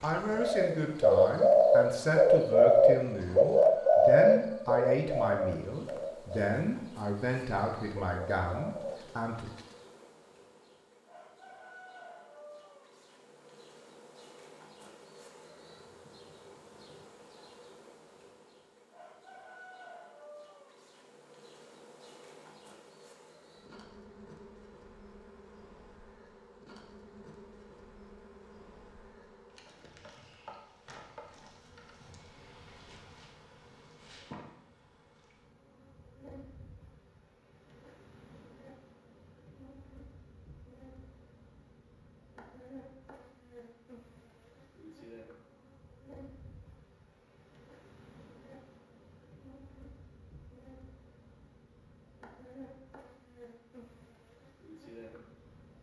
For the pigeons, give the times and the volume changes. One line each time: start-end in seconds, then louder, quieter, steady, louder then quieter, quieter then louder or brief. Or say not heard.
0.3-9.8 quieter.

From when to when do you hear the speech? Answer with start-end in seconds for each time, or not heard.
0.0-9.5.